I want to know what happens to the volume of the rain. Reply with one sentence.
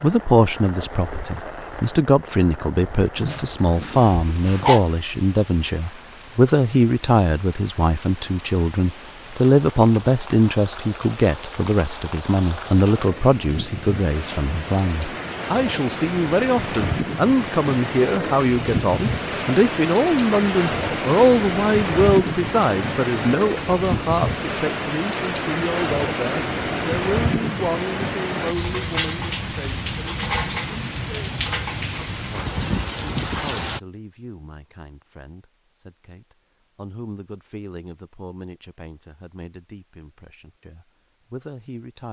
The loudness of the rain goes up.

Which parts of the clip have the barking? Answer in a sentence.
You can hear the barking from 3.1 to 4.8 s.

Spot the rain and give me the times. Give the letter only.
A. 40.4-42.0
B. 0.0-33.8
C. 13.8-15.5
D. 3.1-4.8
B.